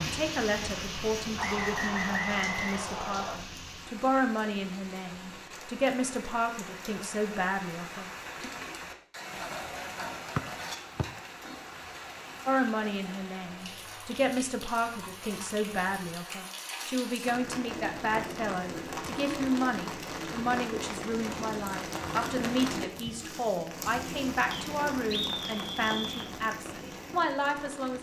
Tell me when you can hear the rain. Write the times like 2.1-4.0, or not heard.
0.0-27.9.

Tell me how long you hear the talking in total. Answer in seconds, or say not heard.
24 s.